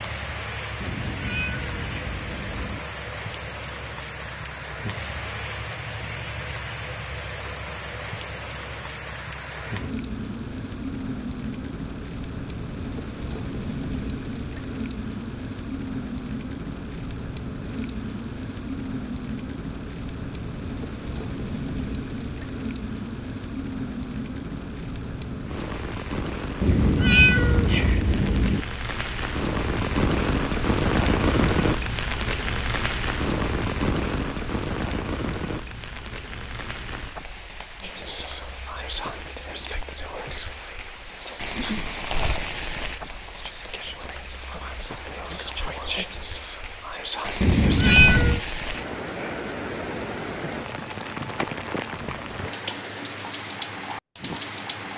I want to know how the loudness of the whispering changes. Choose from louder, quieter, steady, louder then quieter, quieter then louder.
quieter then louder.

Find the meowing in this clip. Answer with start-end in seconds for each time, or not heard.
0.8-2.8, 26.6-28.6, 47.4-48.4.